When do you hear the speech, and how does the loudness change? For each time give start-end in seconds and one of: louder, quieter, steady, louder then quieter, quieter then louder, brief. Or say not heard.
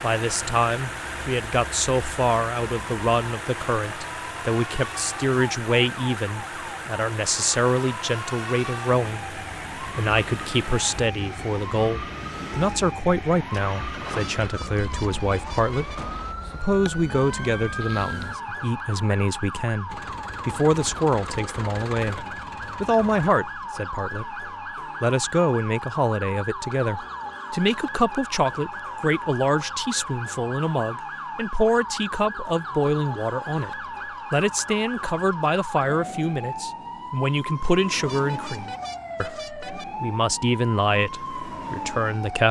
0.0-33.7 steady
34.3-42.4 steady.